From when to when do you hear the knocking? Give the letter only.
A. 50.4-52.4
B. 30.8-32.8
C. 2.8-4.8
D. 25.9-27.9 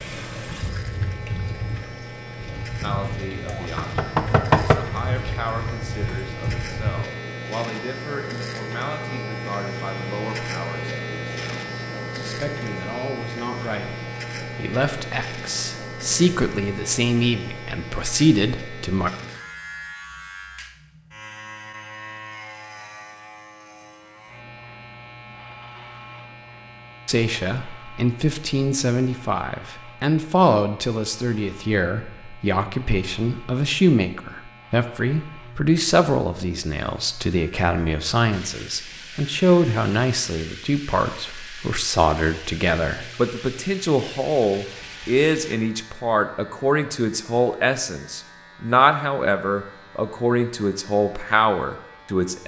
C.